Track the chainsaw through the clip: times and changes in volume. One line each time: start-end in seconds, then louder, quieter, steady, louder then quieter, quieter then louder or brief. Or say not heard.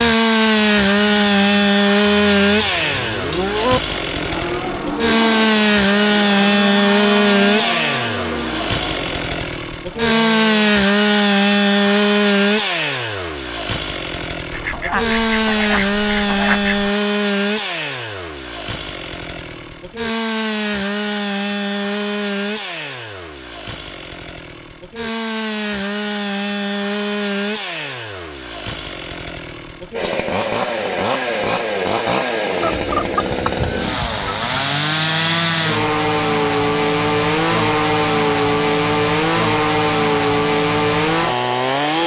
0.0-42.0 quieter then louder.